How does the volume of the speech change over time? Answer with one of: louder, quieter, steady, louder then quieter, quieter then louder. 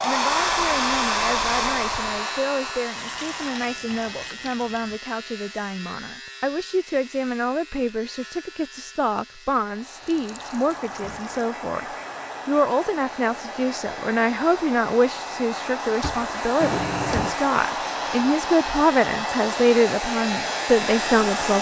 louder.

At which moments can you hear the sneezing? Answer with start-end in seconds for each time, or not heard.
not heard.